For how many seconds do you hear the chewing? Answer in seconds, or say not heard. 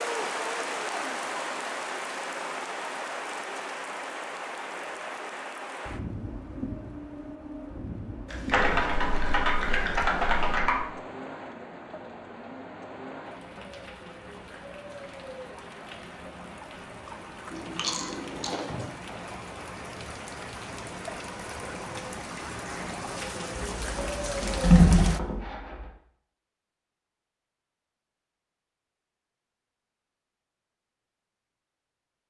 4 s.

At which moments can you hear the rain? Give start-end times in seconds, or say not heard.
0.0-25.2.